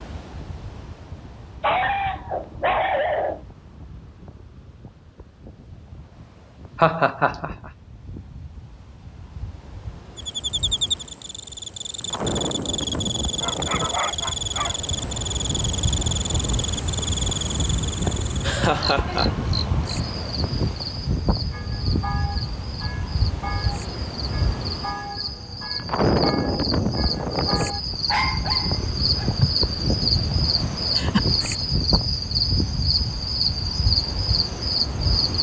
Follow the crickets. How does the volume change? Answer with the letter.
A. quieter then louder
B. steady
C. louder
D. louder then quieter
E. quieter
A.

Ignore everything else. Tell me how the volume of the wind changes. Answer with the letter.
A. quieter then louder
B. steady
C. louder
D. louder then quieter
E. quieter
C.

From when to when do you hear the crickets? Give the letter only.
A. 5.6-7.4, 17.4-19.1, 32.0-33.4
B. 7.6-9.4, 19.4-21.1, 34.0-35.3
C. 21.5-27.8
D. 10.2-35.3
D.